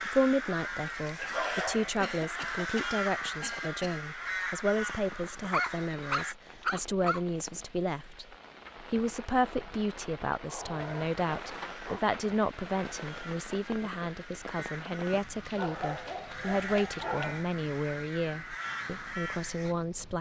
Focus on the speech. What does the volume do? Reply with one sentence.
The volume of the speech stays about the same.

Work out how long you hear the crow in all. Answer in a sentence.
You can hear the crow for 15 seconds altogether.